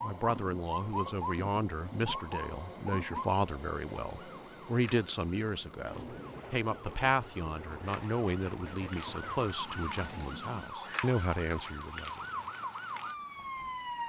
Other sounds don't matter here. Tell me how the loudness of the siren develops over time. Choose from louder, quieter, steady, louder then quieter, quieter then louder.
quieter then louder.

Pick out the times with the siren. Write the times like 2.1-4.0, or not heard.
0.0-14.0.